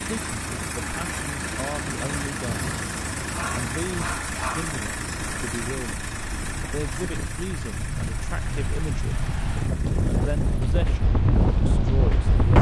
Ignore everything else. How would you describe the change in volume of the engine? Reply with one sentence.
The loudness of the engine goes down.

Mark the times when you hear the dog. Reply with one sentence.
You can hear the dog from 3.3 to 4.8 s.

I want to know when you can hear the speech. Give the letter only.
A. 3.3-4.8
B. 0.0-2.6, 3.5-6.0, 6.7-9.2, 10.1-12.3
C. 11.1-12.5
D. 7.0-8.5
B.